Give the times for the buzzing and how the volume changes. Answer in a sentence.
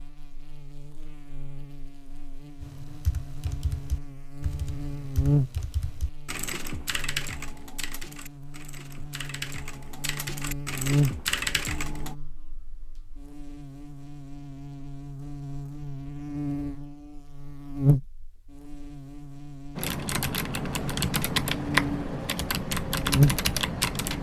The buzzing can be heard from 0.0 to 24.1 s, getting louder.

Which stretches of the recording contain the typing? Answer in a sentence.
The typing can be heard from 2.6 to 12.2 s and from 19.8 to 24.1 s.